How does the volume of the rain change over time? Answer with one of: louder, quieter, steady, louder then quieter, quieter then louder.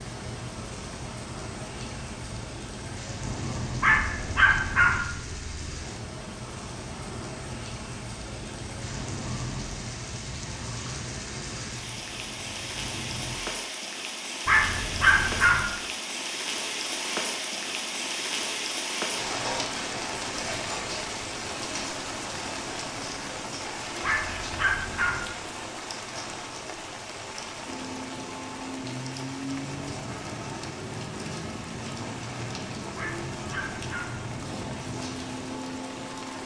louder then quieter.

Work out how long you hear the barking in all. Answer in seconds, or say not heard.
5 s.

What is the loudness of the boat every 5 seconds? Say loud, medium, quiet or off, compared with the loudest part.
loud, loud, medium, off, off, loud, loud, loud.